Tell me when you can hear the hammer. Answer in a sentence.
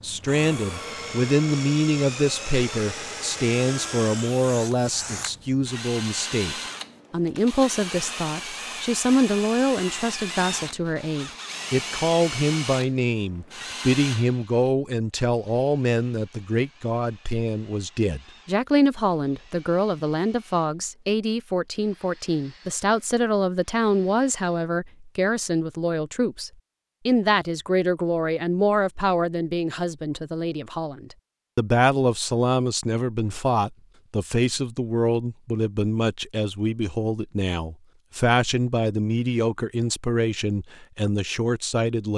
The hammer can't be heard in this clip.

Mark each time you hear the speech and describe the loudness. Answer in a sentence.
The speech can be heard from 0.0 to 42.1 s, at a steady volume.